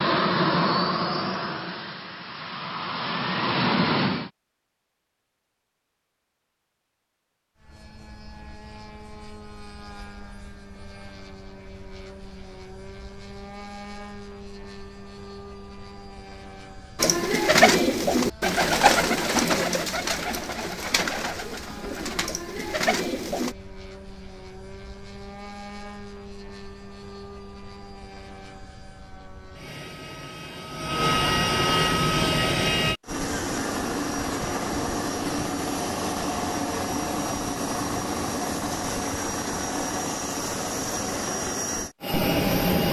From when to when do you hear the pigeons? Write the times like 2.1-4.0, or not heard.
16.9-23.6.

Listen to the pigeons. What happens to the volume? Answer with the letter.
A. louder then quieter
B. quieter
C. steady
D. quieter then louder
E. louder
B.